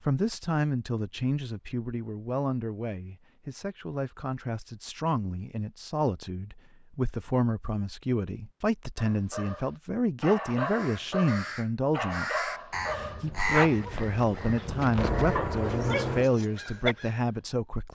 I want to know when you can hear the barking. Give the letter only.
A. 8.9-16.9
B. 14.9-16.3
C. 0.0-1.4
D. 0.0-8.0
A.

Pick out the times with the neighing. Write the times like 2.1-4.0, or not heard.
14.9-16.3.